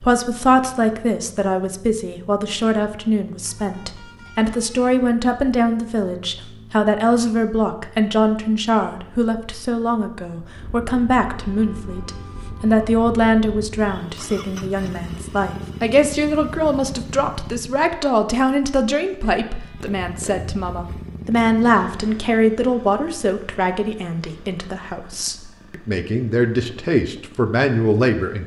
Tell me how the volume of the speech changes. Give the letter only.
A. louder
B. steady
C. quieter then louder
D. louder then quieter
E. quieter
B.